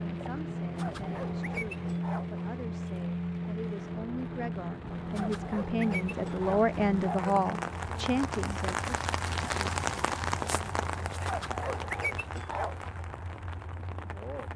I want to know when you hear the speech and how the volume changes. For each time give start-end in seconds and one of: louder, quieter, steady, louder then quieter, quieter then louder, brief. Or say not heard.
0.1-8.8 louder.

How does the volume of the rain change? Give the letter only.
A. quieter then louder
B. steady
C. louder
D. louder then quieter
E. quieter
D.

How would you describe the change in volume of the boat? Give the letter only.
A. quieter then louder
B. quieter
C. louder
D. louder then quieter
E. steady
B.